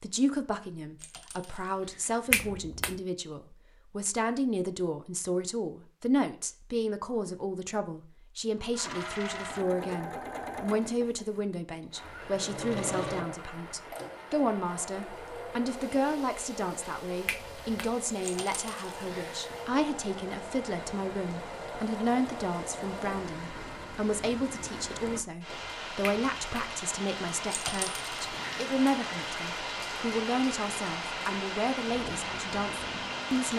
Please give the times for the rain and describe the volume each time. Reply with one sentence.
The rain can be heard from 11.9 to 33.5 s, getting louder.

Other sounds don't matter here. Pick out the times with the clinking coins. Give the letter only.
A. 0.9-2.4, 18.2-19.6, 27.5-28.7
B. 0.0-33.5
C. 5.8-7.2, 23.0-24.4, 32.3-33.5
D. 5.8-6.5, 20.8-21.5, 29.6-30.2
A.